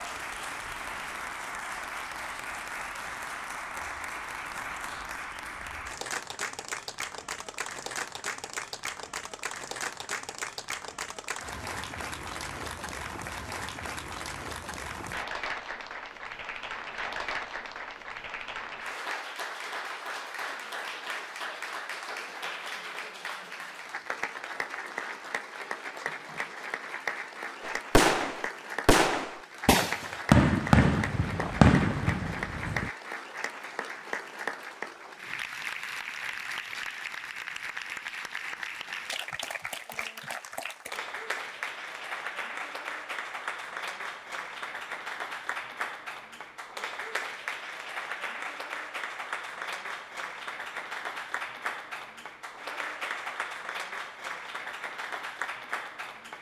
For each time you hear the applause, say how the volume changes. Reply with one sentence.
You can hear the applause from 0.0 to 56.3 s, at a steady volume.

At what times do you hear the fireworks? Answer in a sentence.
The fireworks can be heard from 27.6 to 32.9 s.